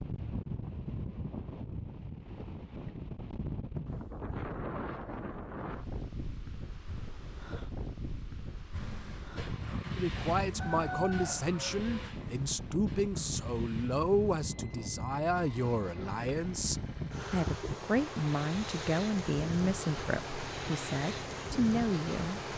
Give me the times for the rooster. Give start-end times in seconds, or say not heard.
10.6-11.9.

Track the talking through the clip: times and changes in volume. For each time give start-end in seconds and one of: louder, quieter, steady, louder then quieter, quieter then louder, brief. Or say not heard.
9.9-22.4 steady.